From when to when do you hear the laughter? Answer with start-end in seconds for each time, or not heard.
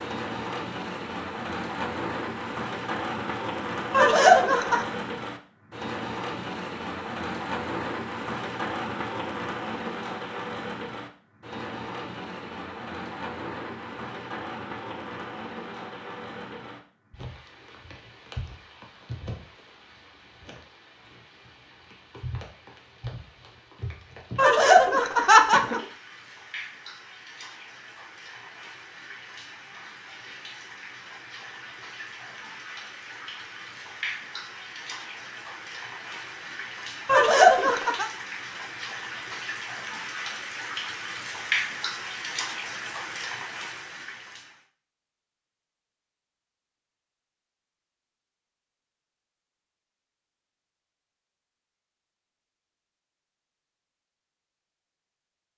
3.9-4.8, 24.4-25.8, 37.0-38.1.